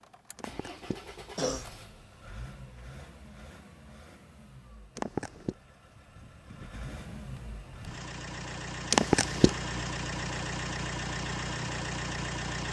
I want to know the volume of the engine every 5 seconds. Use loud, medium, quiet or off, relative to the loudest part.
quiet, medium, loud.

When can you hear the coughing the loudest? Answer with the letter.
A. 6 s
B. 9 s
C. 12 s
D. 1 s
B.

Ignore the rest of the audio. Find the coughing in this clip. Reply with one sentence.
You can hear the coughing from 0.3 to 1.6 s, from 5.0 to 5.5 s and from 8.9 to 9.5 s.